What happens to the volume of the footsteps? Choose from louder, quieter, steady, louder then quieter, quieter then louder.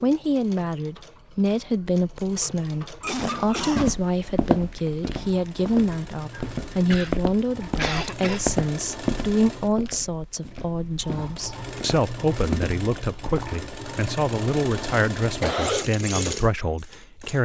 quieter then louder.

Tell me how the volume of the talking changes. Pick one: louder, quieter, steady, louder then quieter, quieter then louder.
steady.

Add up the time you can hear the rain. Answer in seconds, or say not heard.
not heard.